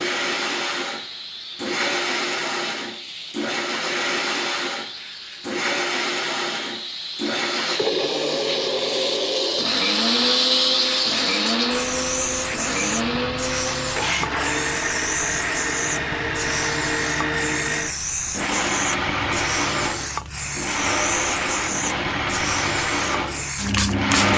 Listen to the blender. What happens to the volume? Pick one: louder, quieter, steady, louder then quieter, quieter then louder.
steady.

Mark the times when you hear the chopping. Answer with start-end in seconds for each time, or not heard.
not heard.